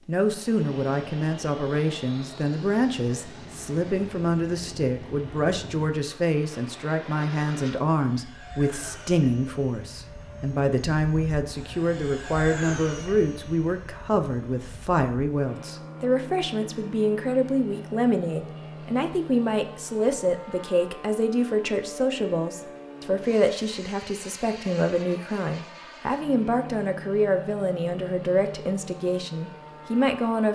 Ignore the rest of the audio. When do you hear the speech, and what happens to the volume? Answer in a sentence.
The speech can be heard from 0.1 to 30.5 s, at a steady volume.